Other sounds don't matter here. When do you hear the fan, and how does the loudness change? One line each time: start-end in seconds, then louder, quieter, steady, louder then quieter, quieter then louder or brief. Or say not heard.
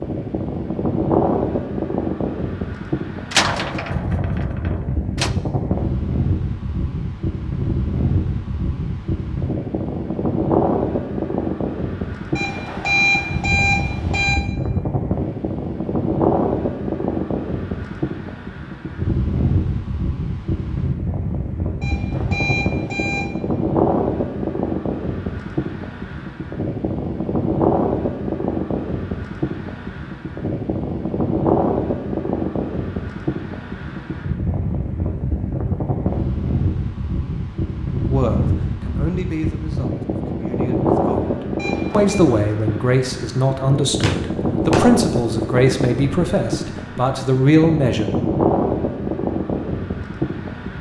0.0-50.7 steady.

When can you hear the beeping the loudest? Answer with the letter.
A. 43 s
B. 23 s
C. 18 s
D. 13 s
D.